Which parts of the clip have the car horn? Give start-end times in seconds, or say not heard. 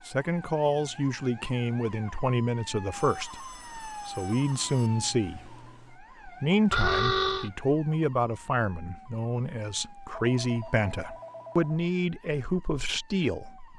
6.7-7.5.